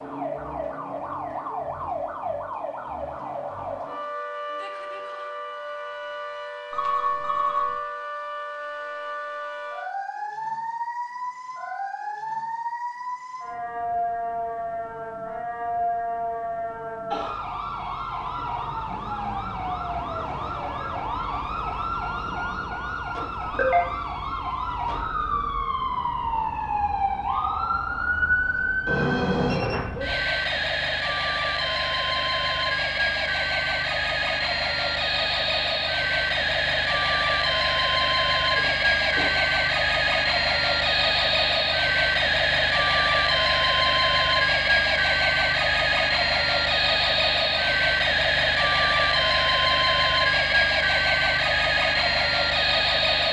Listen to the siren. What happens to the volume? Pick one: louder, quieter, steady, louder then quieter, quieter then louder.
louder.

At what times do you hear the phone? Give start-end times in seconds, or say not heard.
6.7-7.8, 28.9-29.9, 38.5-39.5.